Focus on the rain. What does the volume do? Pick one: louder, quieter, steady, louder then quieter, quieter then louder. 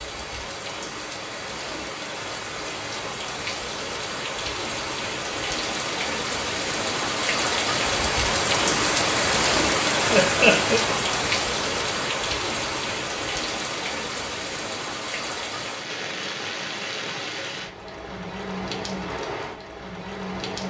louder then quieter.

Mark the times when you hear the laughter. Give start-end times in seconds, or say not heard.
10.1-10.8.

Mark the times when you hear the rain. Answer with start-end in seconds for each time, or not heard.
0.0-20.6.